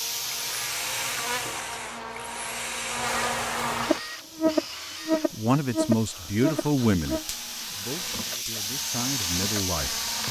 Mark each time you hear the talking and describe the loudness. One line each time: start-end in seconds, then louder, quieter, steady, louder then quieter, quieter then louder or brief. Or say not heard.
5.3-10.2 quieter then louder.